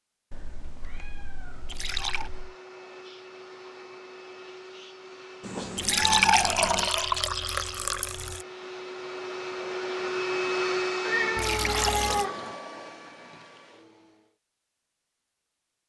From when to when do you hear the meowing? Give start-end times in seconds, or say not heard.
0.3-2.5, 5.4-6.9, 11.1-12.6.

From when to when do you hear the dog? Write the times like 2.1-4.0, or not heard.
not heard.